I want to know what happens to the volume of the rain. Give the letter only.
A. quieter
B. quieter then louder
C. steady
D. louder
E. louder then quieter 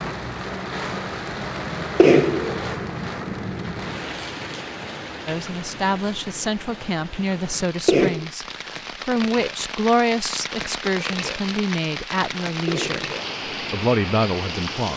B.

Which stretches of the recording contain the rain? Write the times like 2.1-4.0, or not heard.
0.0-14.9.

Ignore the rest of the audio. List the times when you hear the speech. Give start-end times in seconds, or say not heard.
5.2-13.1, 13.7-14.9.